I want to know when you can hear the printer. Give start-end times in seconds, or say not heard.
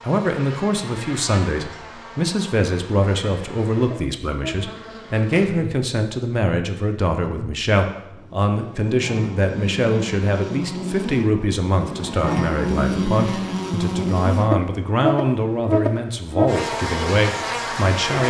not heard.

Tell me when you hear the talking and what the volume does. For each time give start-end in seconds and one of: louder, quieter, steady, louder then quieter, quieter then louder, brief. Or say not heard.
0.0-18.2 steady.